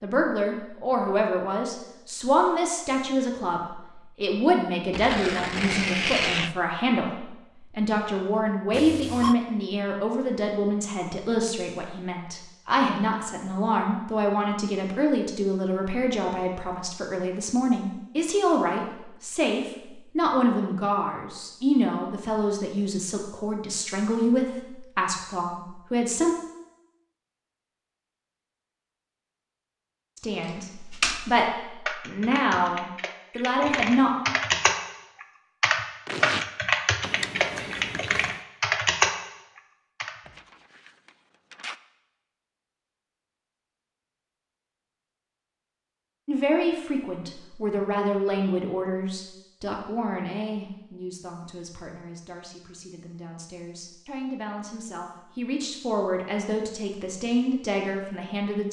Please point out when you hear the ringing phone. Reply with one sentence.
You can hear the ringing phone from 8.7 to 9.3 s and from 37.0 to 38.4 s.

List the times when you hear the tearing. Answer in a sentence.
You can hear the tearing from 4.9 to 6.5 s, from 36.0 to 36.5 s and from 40.4 to 41.8 s.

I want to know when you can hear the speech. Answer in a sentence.
The speech can be heard from 0.0 to 26.4 s, from 30.1 to 34.1 s and from 46.2 to 58.6 s.